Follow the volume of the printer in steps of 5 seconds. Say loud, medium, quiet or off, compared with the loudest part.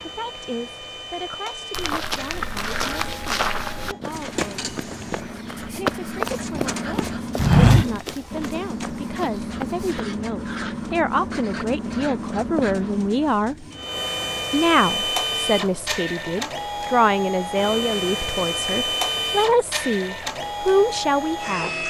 medium, quiet, medium, loud, loud.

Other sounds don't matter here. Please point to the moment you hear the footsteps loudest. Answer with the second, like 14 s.
8 s.